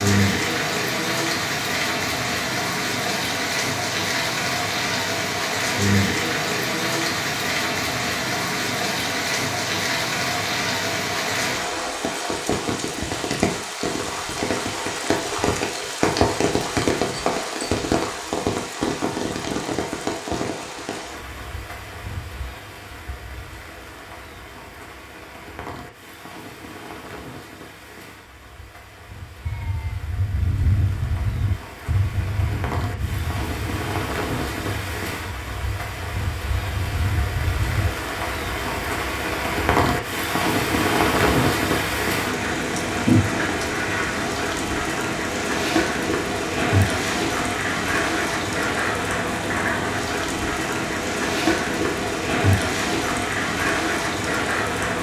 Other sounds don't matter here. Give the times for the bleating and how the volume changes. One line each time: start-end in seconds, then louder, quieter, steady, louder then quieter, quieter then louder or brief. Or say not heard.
29.4-37.9 quieter then louder.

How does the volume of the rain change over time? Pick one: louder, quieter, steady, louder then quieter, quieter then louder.
quieter then louder.